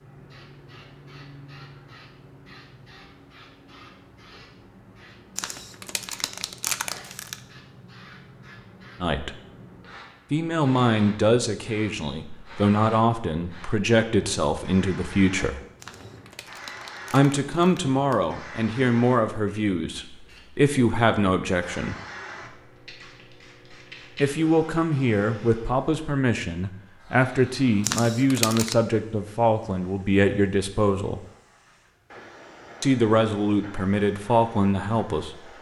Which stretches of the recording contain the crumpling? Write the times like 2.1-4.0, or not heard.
5.3-7.4, 15.8-18.2, 27.8-28.8.